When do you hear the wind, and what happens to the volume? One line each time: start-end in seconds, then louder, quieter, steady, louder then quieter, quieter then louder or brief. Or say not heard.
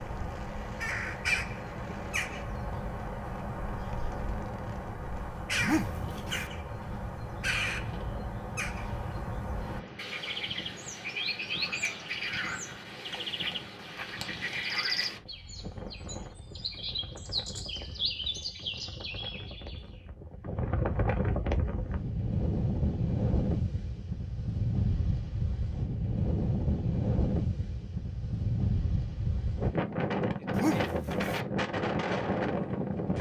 0.0-33.1 louder.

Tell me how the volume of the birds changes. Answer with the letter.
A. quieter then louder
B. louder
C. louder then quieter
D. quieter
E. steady
E.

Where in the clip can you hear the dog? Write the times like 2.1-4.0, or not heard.
5.6-6.5, 30.5-31.4.